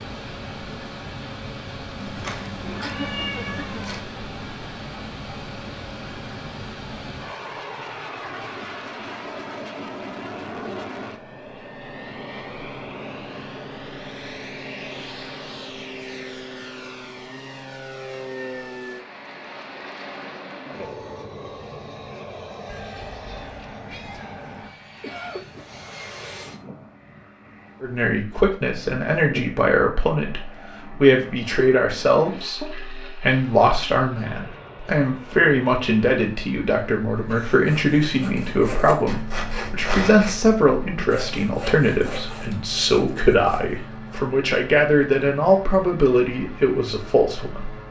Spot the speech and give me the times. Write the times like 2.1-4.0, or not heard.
27.8-47.7.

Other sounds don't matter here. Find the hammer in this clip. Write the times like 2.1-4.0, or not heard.
not heard.